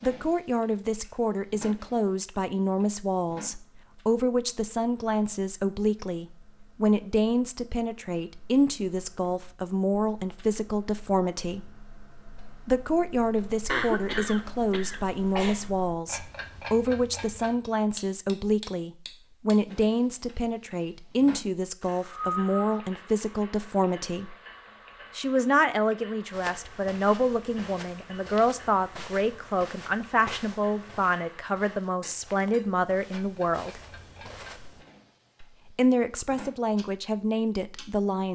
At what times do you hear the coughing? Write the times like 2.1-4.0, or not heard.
13.7-15.6, 22.0-22.8.